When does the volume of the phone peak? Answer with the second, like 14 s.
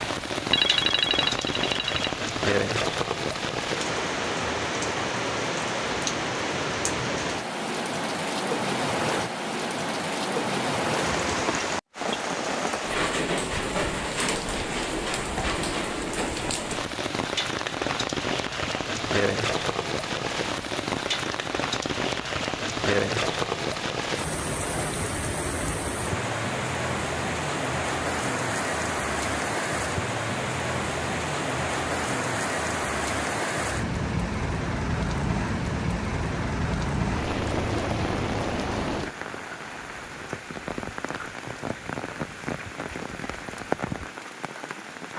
1 s.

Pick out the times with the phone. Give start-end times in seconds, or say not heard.
0.5-2.1.